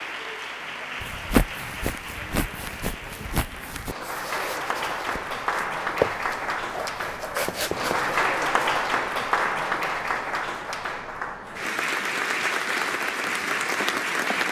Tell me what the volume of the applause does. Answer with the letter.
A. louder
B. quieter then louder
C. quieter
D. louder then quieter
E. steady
A.